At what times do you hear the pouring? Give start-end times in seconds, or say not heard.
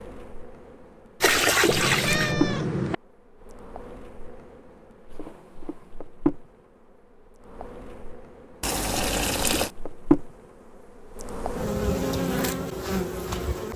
1.2-2.4, 8.6-9.7.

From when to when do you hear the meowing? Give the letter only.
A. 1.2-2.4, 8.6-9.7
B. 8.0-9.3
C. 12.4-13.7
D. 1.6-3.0
D.